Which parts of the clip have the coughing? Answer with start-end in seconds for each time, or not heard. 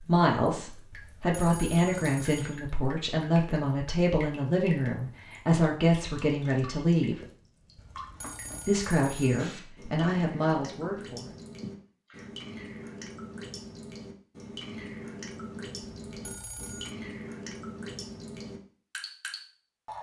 11.6-12.3.